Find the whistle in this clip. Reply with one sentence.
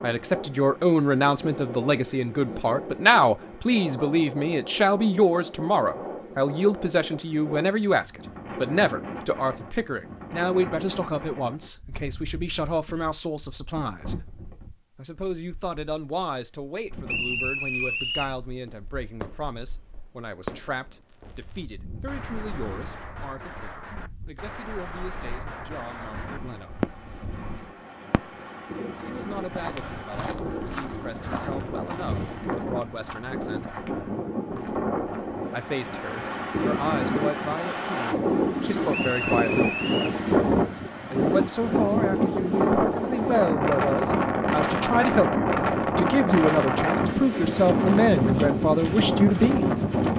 The whistle can be heard from 17.1 to 18.4 s and from 38.9 to 40.2 s.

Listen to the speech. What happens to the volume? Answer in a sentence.
The loudness of the speech goes down, then up.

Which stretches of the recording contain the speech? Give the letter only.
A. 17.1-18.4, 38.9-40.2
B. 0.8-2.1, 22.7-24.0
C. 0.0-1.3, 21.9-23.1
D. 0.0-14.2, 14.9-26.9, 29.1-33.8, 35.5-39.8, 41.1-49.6
D.